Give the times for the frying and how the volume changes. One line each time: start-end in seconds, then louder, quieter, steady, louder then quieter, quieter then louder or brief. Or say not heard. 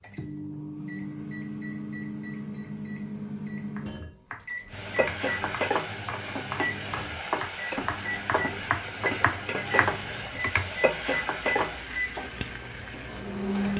4.7-13.7 quieter.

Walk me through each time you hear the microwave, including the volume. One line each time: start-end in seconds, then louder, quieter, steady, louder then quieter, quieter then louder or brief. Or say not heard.
0.0-13.7 steady.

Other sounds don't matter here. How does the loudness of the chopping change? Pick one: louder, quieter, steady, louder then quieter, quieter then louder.
louder.